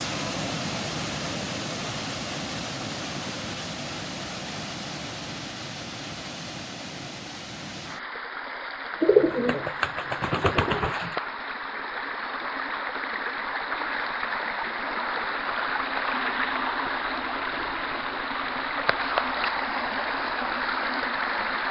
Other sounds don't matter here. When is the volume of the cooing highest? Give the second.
9 s.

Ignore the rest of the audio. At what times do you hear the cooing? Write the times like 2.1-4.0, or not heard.
9.0-11.2.